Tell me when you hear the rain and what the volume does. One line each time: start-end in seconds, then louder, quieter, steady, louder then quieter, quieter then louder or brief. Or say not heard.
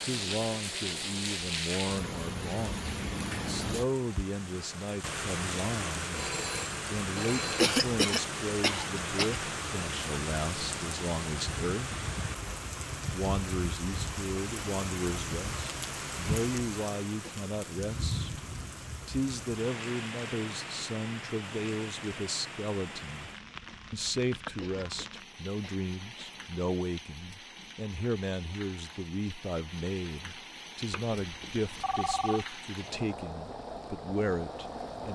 0.0-35.1 quieter.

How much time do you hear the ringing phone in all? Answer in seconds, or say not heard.
3 s.